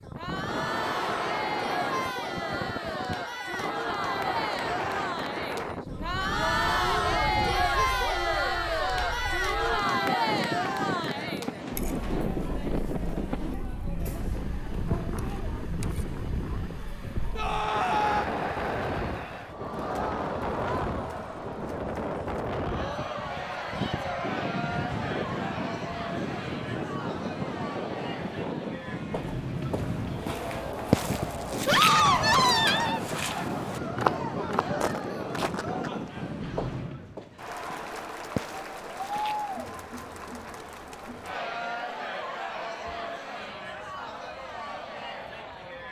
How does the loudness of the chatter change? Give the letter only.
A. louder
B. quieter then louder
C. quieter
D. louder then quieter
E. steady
C.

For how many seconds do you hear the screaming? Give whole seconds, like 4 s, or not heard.
2 s.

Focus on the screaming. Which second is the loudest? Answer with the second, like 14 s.
32 s.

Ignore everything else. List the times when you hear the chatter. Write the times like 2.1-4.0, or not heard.
0.0-45.8.